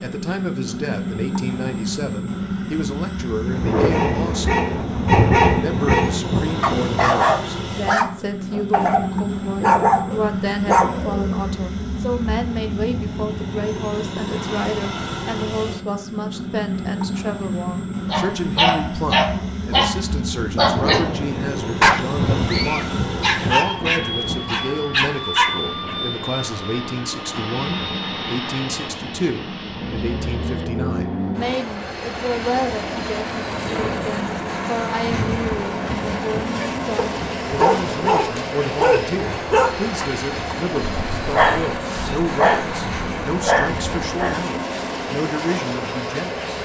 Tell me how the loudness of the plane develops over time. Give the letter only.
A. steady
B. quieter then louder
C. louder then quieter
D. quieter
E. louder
A.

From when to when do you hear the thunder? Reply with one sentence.
The thunder can be heard from 3.5 to 7.2 s, from 20.6 to 25.1 s and from 33.5 to 37.4 s.